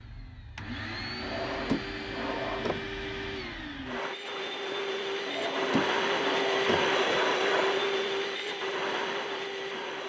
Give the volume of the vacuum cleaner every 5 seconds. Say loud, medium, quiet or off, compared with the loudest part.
medium, loud.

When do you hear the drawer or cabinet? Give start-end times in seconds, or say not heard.
1.2-2.9, 5.2-7.0.